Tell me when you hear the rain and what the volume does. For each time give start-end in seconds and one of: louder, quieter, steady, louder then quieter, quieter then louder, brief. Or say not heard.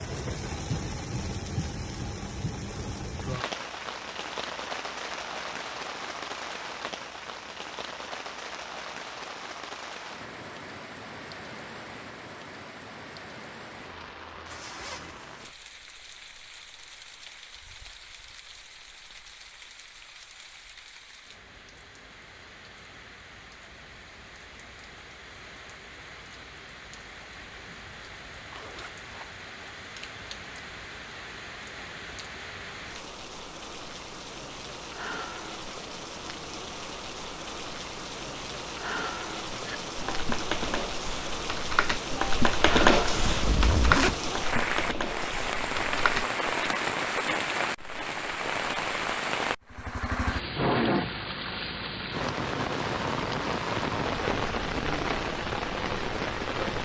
0.0-56.8 quieter then louder.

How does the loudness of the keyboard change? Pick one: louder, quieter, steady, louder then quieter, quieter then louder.
louder then quieter.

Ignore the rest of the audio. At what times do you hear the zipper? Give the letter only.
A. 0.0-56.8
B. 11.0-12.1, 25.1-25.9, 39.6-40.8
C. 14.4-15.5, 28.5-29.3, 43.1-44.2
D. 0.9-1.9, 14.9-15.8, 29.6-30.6
C.